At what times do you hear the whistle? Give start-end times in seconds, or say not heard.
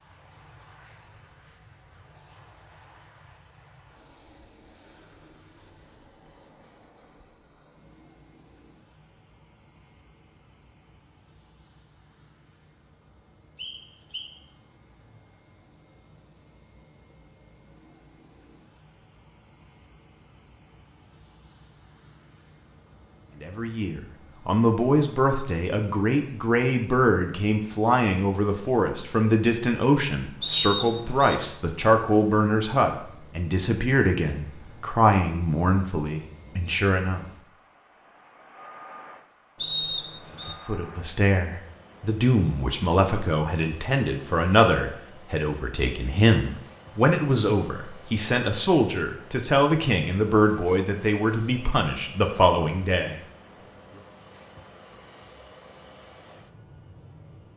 13.6-14.3, 30.4-31.4, 39.5-40.5.